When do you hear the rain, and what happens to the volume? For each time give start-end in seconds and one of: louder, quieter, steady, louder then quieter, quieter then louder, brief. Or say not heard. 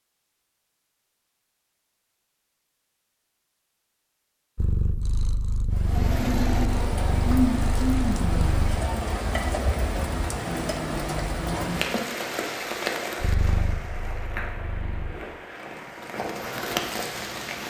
5.7-17.6 quieter.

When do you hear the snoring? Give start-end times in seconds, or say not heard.
not heard.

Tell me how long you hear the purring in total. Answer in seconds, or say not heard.
6 s.